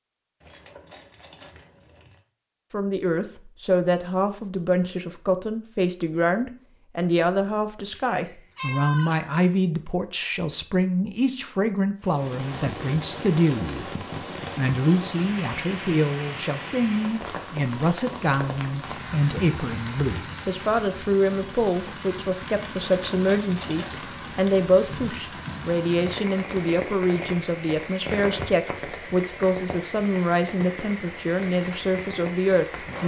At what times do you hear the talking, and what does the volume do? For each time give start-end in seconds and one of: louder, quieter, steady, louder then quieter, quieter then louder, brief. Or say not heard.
2.7-33.0 steady.